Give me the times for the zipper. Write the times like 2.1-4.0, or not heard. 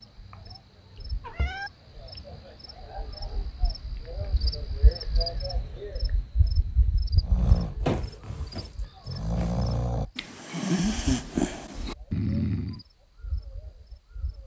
not heard.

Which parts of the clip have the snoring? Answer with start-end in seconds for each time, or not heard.
7.2-12.8.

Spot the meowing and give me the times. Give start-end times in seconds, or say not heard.
1.2-1.7.